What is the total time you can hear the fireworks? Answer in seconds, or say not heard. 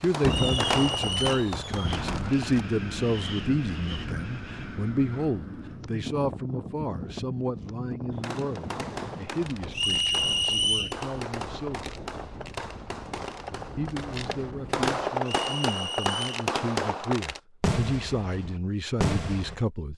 14 s.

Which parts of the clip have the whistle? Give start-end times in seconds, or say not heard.
0.2-1.5, 9.7-10.9, 15.2-16.2.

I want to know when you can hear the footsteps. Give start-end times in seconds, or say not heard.
not heard.